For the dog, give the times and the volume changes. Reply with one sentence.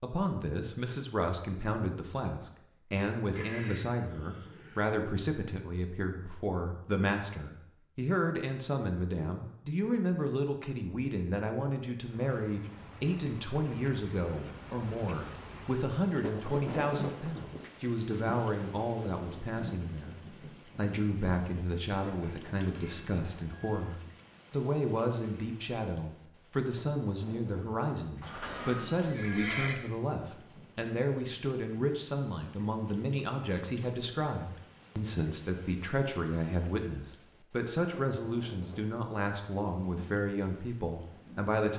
The dog can't be heard in this clip.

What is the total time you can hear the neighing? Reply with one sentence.
You can hear the neighing for 5 seconds altogether.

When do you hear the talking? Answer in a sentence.
You can hear the talking from 0.0 to 41.7 s.